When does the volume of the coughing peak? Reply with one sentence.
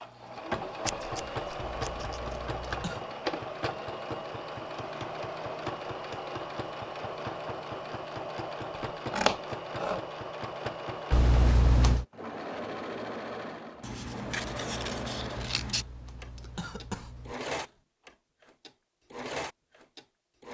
The volume of the coughing peaks at 12 seconds.